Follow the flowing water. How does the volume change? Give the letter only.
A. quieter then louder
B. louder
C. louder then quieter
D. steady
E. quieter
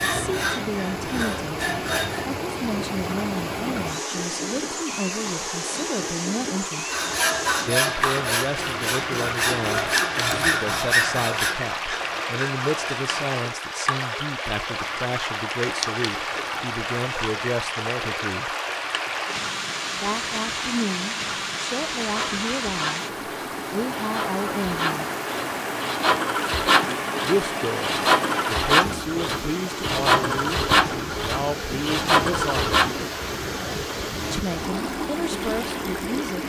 D.